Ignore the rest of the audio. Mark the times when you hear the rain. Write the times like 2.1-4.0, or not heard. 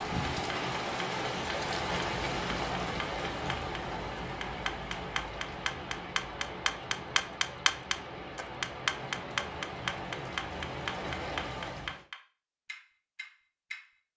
0.0-12.1.